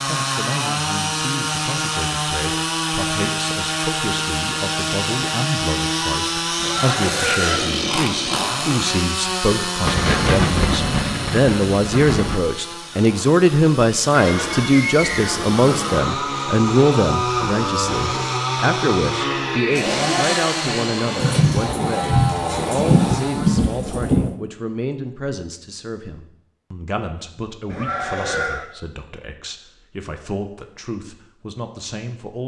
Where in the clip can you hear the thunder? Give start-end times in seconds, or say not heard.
9.8-12.4, 21.2-24.4.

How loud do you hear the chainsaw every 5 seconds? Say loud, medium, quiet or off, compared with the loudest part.
loud, loud, medium, loud, loud, off, off.